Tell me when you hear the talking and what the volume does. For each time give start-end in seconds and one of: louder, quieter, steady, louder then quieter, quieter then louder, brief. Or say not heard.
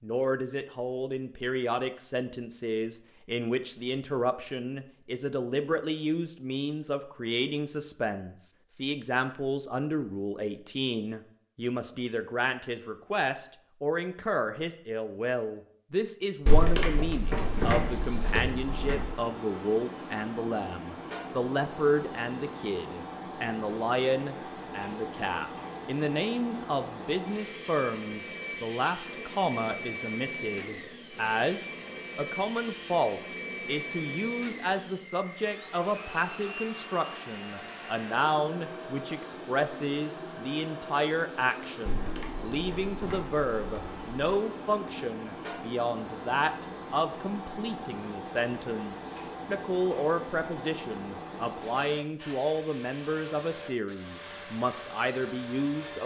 0.0-56.0 steady.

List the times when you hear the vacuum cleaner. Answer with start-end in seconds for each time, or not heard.
17.4-56.0.